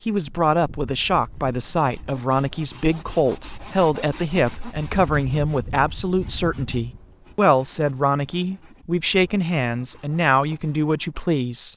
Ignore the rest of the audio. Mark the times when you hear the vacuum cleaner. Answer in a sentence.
The vacuum cleaner can't be heard in this clip.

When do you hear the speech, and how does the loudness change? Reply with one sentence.
You can hear the speech from 0.1 to 11.7 s, at a steady volume.